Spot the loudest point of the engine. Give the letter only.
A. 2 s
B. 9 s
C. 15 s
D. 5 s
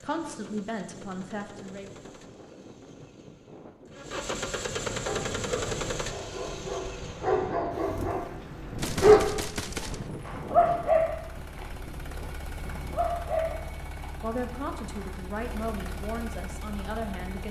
D.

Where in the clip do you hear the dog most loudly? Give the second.
9 s.